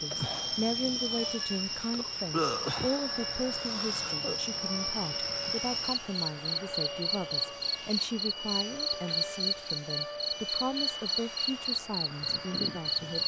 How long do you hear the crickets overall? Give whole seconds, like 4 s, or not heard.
13 s.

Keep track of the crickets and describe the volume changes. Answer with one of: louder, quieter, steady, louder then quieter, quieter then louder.
steady.